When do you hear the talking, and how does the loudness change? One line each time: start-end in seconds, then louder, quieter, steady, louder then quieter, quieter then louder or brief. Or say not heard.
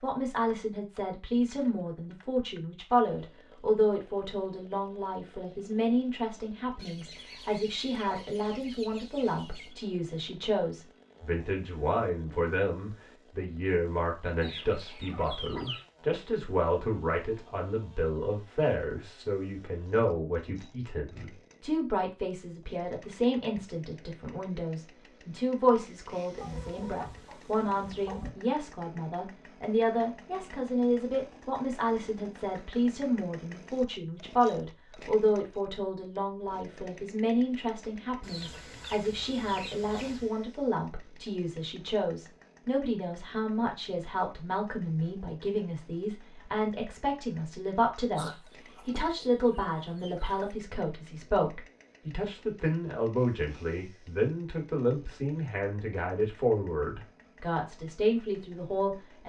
0.0-59.2 steady.